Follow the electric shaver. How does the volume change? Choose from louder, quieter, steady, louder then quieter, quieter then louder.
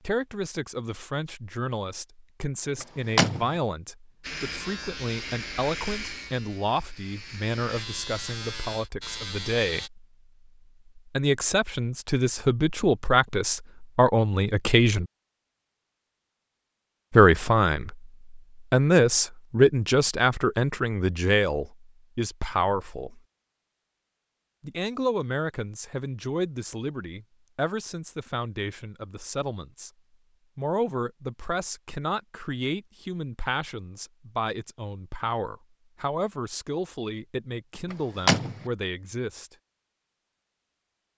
quieter then louder.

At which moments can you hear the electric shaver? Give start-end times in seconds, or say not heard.
4.2-9.9.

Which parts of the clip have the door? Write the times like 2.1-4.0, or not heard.
2.8-3.5, 37.9-38.6.